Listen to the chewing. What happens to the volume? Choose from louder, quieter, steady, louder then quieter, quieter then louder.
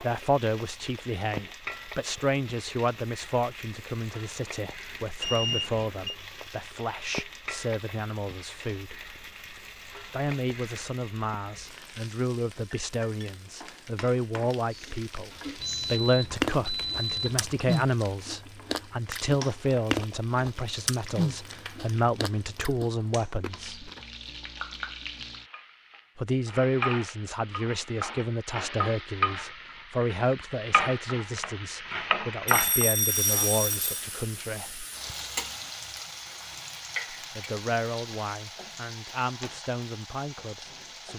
quieter.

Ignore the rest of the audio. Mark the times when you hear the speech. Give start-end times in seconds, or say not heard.
0.0-9.1, 10.1-23.9, 26.1-34.9, 37.1-41.1.